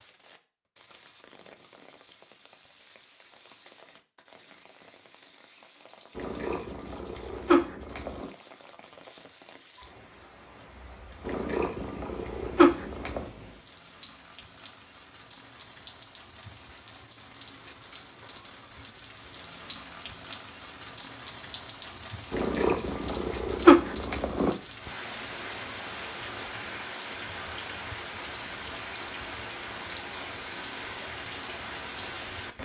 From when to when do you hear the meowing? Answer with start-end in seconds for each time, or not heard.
6.2-8.3, 11.2-13.2, 22.3-24.6.